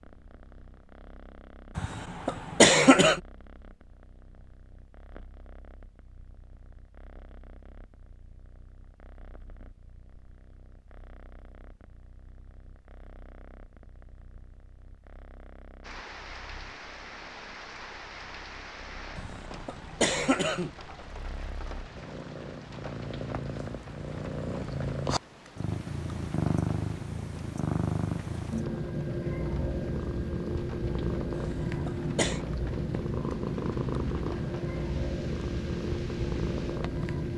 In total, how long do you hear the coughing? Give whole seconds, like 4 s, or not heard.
4 s.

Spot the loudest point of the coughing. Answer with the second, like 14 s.
3 s.